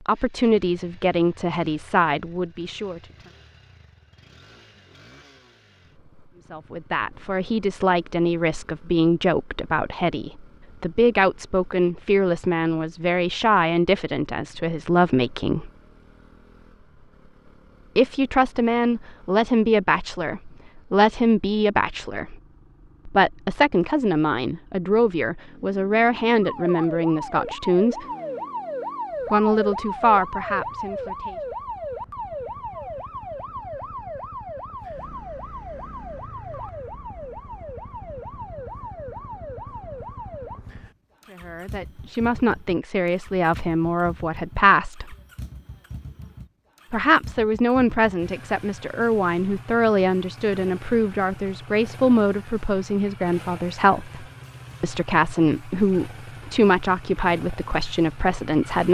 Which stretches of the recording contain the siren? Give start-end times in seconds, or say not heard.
26.4-40.6.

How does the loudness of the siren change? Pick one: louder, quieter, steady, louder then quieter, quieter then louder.
quieter.